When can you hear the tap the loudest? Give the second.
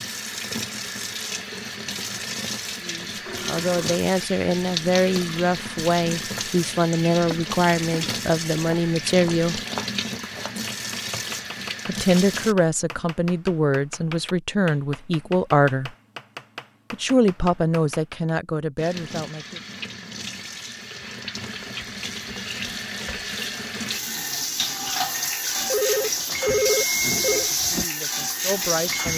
27 s.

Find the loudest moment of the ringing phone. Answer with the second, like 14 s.
27 s.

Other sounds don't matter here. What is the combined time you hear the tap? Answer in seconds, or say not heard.
23 s.